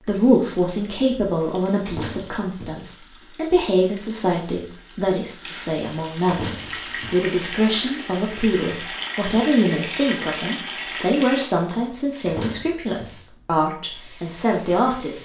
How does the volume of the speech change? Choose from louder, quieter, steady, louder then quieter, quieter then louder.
steady.